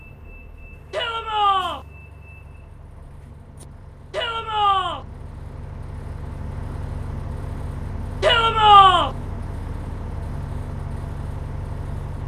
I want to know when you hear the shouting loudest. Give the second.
9 s.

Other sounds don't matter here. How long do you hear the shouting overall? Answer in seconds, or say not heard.
3 s.